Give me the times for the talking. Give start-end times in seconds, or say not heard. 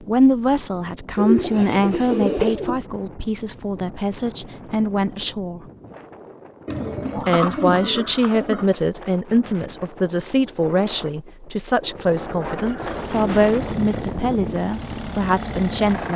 0.0-5.6, 7.2-16.1.